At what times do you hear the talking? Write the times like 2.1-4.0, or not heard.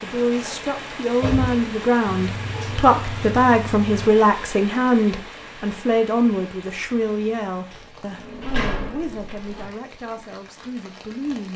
0.0-11.5.